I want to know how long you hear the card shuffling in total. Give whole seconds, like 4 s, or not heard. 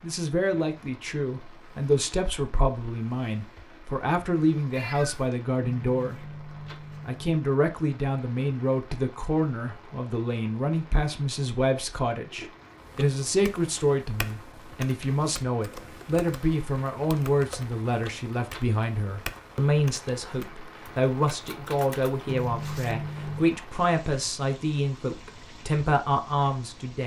3 s.